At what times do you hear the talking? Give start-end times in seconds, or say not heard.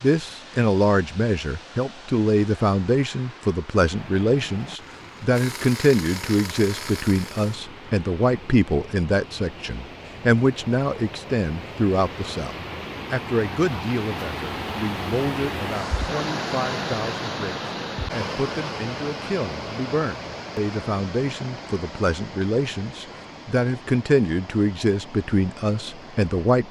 0.0-26.6.